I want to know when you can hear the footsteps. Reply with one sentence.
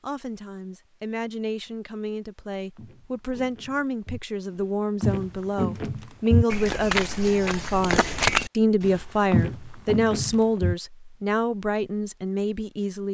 You can hear the footsteps from 2.8 to 10.8 s.